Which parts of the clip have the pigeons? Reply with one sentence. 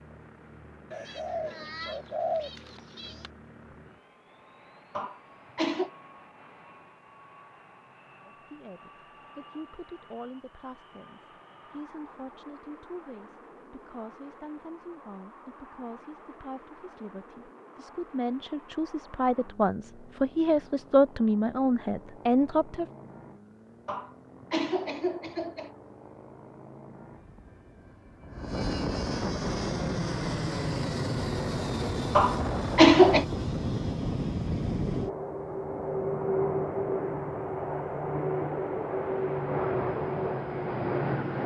You can hear the pigeons from 0.9 to 3.3 s.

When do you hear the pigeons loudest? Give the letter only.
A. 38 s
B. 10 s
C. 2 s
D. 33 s
C.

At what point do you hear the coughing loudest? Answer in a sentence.
The volume of the coughing peaks at 33 seconds.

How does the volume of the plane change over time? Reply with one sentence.
The volume of the plane goes up.